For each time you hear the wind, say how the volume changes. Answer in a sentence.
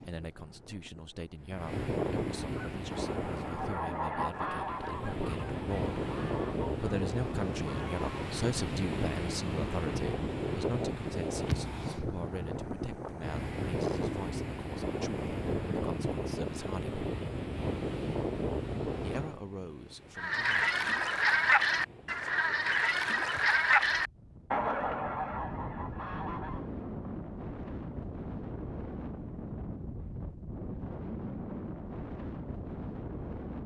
The wind can be heard from 0.0 to 33.6 s, getting quieter then louder.